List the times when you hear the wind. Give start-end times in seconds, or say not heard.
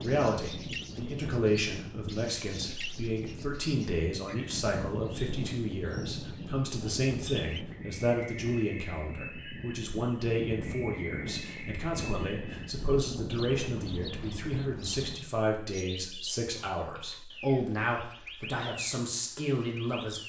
0.0-15.2.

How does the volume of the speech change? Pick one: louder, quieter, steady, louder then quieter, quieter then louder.
steady.